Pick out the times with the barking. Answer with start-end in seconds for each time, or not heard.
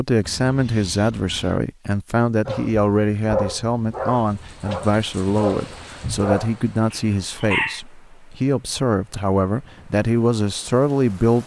2.5-7.8.